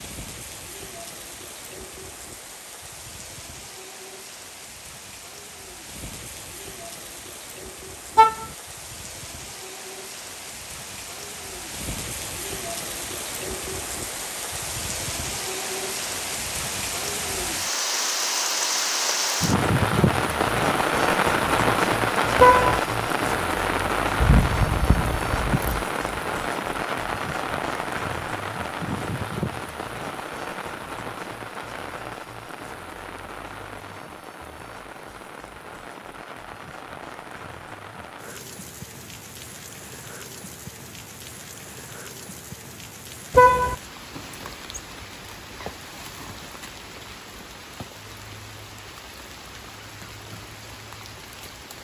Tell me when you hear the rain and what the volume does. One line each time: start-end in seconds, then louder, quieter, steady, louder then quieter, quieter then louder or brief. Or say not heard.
0.0-51.7 louder then quieter.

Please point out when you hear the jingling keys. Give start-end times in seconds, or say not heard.
24.1-25.9.